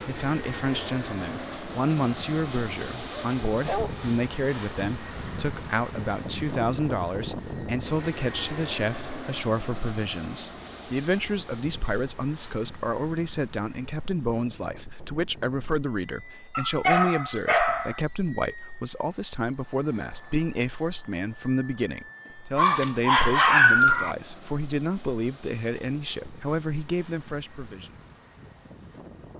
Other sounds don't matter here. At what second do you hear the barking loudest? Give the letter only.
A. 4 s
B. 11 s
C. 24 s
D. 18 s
C.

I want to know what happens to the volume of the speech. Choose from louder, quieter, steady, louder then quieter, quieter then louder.
steady.